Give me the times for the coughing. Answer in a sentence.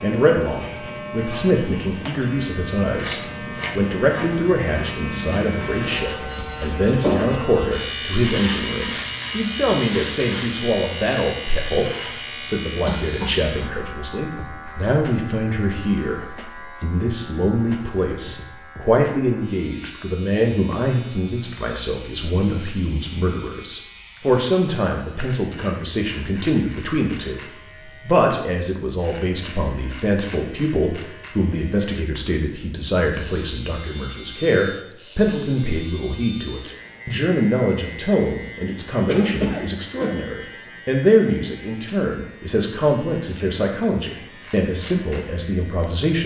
The coughing can be heard from 12.8 to 13.4 s and from 39.0 to 40.1 s.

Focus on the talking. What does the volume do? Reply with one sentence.
The loudness of the talking stays about the same.